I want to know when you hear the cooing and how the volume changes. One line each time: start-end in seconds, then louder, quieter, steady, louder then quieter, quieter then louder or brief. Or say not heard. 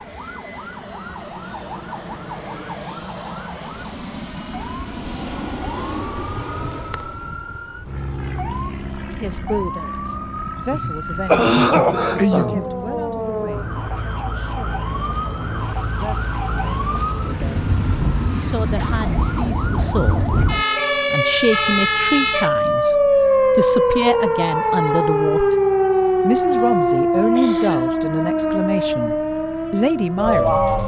not heard.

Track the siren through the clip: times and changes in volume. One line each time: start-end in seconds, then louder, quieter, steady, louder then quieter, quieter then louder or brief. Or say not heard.
0.0-30.8 louder.